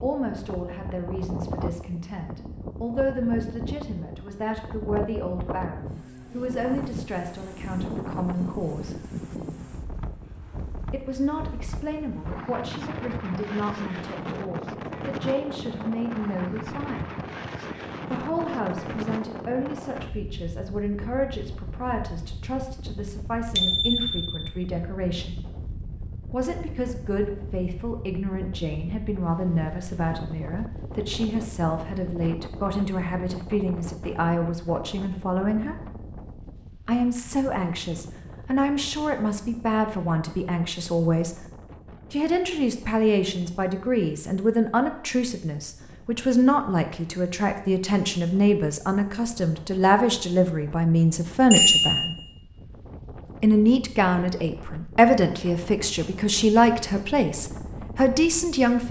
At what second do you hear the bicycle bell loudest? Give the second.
52 s.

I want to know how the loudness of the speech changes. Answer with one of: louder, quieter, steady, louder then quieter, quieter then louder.
louder.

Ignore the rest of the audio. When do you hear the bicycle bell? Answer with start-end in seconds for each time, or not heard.
23.6-24.3, 51.5-52.1.